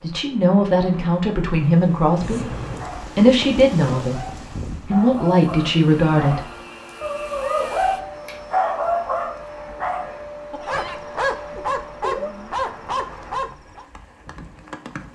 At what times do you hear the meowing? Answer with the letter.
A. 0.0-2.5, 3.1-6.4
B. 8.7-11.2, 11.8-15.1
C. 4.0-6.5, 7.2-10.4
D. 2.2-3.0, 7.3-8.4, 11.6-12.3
D.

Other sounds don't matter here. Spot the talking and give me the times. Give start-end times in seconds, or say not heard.
0.0-2.5, 3.1-6.4.